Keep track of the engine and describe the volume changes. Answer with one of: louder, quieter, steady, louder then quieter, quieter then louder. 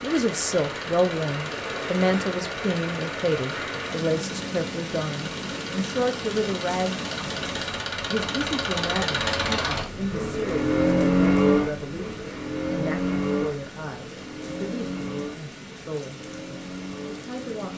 louder then quieter.